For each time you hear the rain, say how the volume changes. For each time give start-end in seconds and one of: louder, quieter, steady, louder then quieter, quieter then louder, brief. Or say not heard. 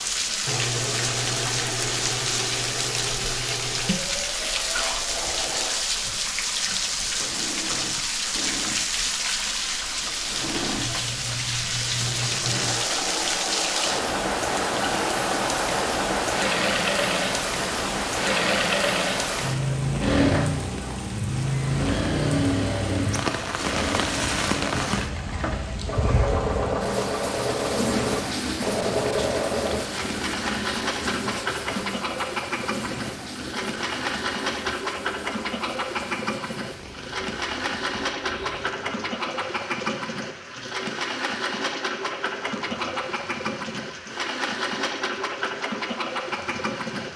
0.0-47.1 quieter.